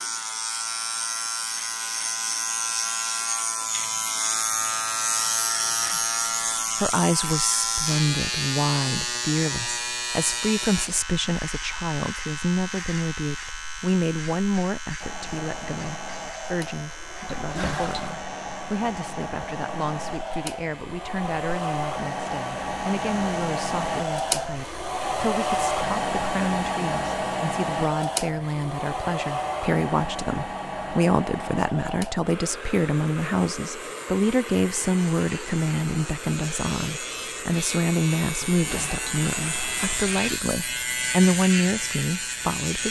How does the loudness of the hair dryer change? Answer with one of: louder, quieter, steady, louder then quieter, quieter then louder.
louder then quieter.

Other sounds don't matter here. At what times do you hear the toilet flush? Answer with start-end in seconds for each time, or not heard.
17.2-18.1, 38.5-40.4.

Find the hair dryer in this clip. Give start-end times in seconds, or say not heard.
15.0-42.8.